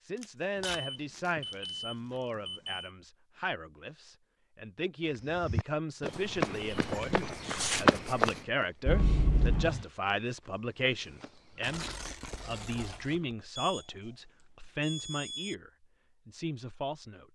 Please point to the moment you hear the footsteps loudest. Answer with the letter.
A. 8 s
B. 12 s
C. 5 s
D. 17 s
A.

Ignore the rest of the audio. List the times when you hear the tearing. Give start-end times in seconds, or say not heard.
0.2-1.7, 7.2-7.8, 11.6-13.2.